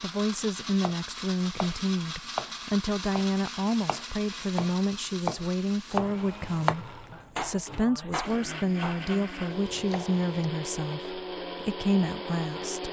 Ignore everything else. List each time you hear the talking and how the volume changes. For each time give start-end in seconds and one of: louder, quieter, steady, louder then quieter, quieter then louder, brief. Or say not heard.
0.0-12.8 steady.